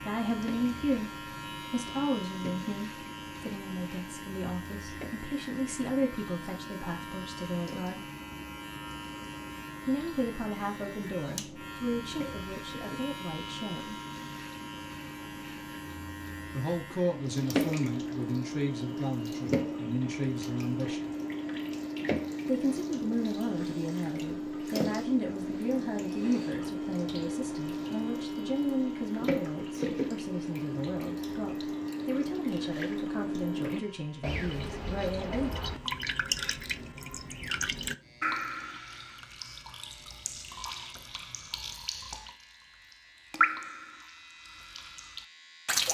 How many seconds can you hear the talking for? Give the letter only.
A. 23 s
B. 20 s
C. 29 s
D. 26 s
C.